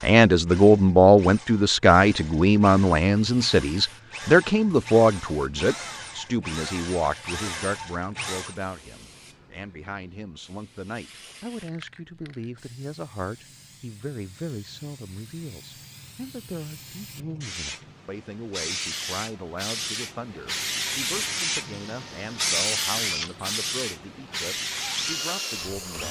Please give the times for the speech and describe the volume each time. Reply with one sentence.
You can hear the speech from 0.0 to 26.0 s, getting quieter.